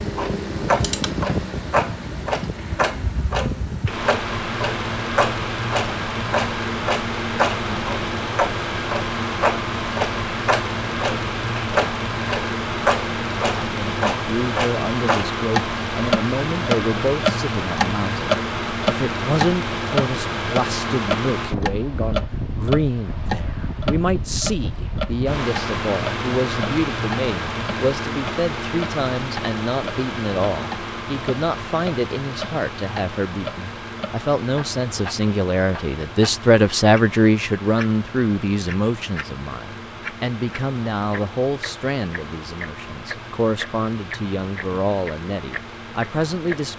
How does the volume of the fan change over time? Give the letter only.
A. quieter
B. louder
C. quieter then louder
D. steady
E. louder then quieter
A.